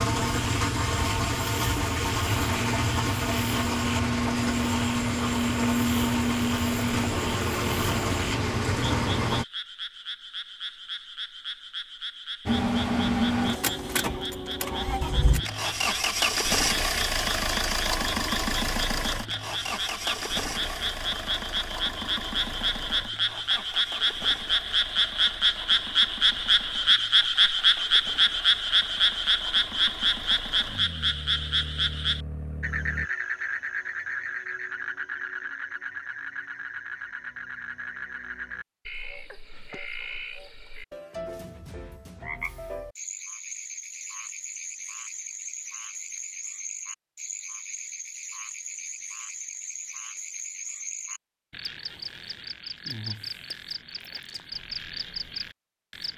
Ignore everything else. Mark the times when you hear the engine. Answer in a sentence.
You can hear the engine from 0.0 to 9.4 s and from 12.4 to 33.1 s.